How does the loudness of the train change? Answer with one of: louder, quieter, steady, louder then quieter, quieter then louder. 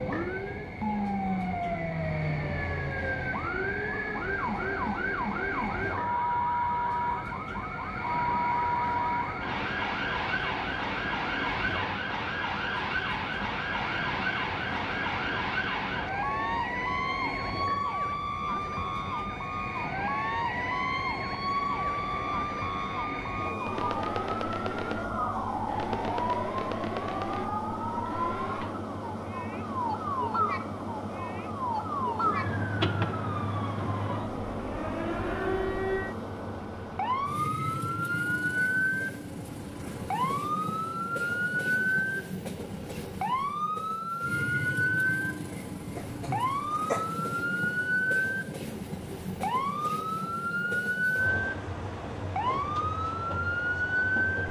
steady.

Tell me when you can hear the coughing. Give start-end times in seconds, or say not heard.
46.0-47.0.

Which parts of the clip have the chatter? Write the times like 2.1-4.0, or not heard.
not heard.